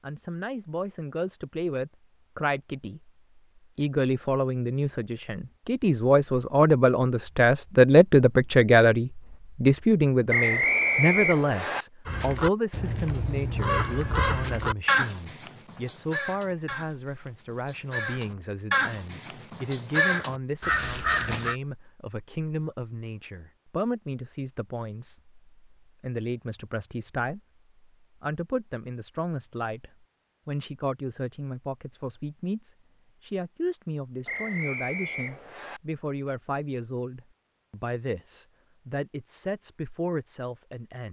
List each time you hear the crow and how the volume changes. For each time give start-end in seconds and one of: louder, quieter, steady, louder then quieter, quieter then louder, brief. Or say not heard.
12.1-21.6 quieter then louder.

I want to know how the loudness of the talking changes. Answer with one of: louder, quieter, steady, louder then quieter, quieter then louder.
quieter.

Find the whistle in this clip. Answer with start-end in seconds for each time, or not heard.
10.3-11.8, 34.2-35.8.